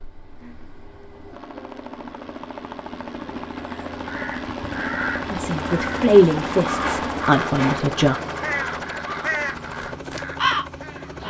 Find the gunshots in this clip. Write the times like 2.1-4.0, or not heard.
6.8-8.0.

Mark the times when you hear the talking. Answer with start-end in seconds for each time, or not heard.
5.3-8.2.